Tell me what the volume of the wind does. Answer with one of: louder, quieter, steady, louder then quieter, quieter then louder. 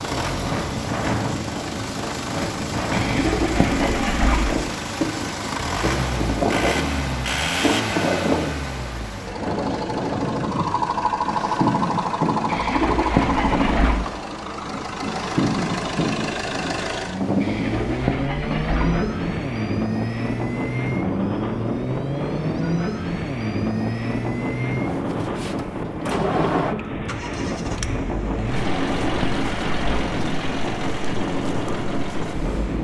steady.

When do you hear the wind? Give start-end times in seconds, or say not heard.
0.0-32.7.